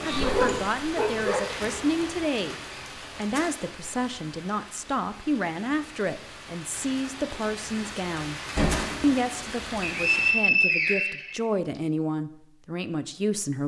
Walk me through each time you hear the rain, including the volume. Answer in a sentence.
The rain can be heard from 0.0 to 10.3 s, getting quieter then louder.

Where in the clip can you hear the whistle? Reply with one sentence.
The whistle can be heard from 9.8 to 11.8 s.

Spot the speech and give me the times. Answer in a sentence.
The speech can be heard from 0.0 to 2.5 s, from 3.1 to 8.4 s and from 9.0 to 13.6 s.